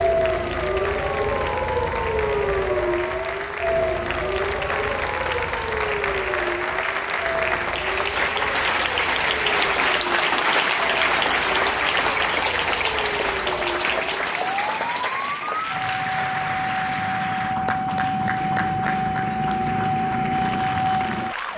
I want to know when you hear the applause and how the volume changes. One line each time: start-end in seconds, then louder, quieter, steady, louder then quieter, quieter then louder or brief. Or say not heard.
0.0-21.5 louder then quieter.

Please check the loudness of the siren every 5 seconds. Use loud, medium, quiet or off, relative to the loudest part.
loud, medium, medium, loud, loud.